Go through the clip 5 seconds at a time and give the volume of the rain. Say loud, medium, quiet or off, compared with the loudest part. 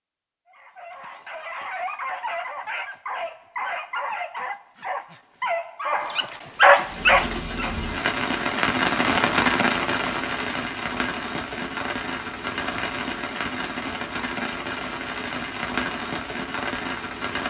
off, loud, medium, medium.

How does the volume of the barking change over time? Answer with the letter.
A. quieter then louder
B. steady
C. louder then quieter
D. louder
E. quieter
D.